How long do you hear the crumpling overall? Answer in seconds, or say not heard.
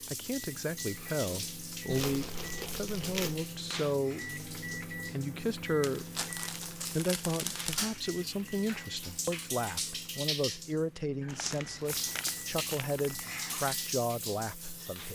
6 s.